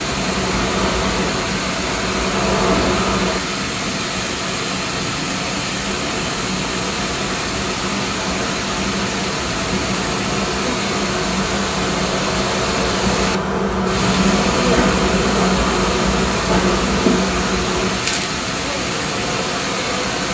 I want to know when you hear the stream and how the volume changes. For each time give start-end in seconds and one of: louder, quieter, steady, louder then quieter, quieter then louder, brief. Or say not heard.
0.0-20.2 steady.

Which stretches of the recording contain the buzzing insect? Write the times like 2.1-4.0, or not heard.
0.0-3.4, 5.8-20.2.